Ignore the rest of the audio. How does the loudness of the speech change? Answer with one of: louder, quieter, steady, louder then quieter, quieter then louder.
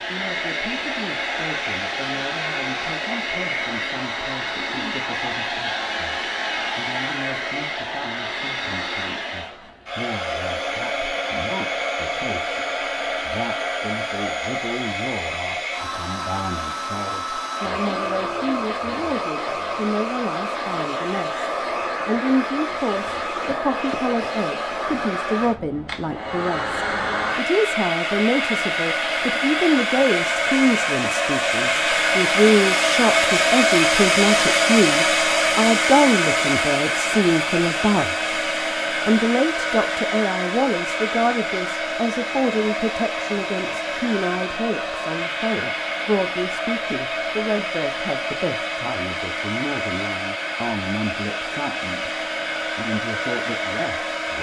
louder then quieter.